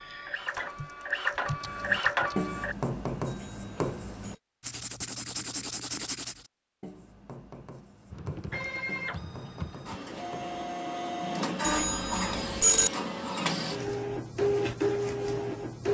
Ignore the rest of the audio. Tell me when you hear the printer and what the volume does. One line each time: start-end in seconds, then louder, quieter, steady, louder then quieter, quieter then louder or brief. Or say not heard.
0.0-2.8 brief
8.5-15.8 louder.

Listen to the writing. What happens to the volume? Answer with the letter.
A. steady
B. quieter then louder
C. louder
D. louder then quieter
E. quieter
E.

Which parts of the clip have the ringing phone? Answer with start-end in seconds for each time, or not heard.
3.2-4.4, 11.6-12.9.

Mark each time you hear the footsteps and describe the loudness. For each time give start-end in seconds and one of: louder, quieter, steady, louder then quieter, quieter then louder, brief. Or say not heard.
not heard.